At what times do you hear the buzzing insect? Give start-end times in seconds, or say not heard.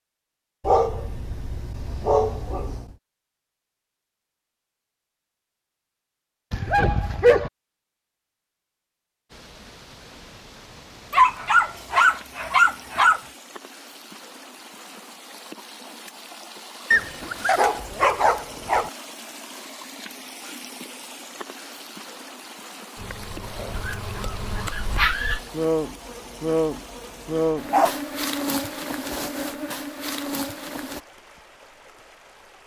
22.9-31.0.